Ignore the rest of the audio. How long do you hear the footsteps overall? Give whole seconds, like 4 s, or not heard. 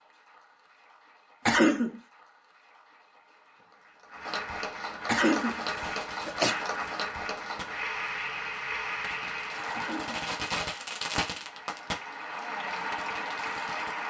not heard.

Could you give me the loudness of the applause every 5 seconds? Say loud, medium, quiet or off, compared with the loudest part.
medium, loud, loud.